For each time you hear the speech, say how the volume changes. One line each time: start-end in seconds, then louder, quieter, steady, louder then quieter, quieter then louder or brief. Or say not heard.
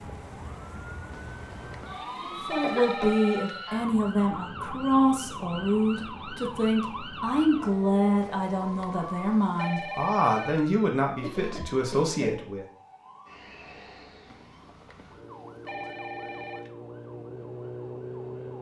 2.2-12.7 steady.